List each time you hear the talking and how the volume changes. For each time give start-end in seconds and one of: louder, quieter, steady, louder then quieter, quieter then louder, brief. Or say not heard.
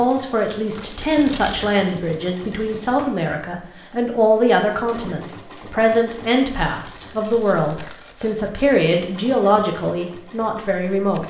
0.0-11.2 steady.